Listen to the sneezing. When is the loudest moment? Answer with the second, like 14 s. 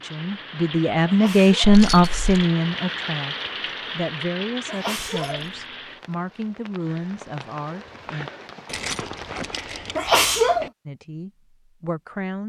10 s.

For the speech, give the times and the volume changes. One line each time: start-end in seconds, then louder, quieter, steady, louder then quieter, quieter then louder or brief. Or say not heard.
0.0-8.3 quieter
10.8-12.4 brief.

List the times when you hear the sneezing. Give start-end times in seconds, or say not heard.
1.1-1.7, 4.7-5.5, 9.9-10.7.